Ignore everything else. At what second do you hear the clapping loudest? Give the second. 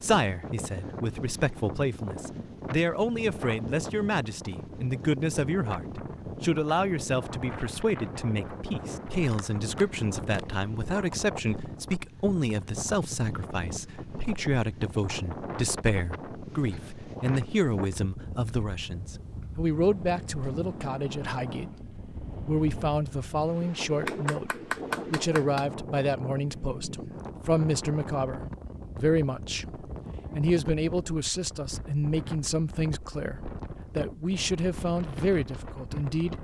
25 s.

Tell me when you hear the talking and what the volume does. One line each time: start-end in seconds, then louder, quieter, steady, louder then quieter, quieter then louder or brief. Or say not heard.
0.0-24.5 steady
25.1-36.4 steady.